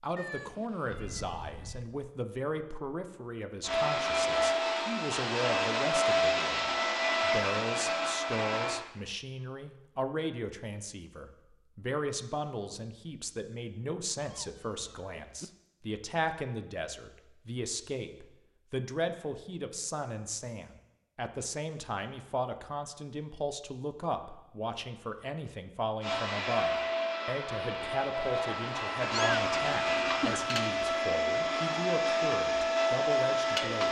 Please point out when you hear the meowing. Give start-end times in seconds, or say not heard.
0.1-2.0, 14.2-15.4, 29.1-30.5.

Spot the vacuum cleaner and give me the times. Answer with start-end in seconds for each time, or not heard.
3.6-8.8, 26.0-33.8.